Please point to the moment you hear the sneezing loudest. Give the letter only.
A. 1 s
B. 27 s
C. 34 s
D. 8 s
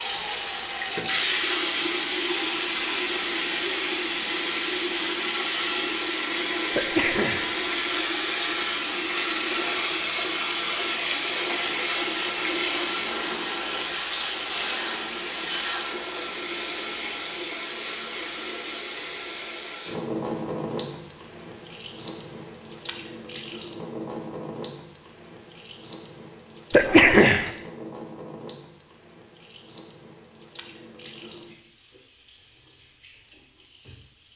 B.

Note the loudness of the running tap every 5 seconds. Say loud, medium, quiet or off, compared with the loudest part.
loud, loud, loud, medium, medium, quiet, quiet.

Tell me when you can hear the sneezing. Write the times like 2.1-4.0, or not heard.
6.8-7.5, 26.7-27.5.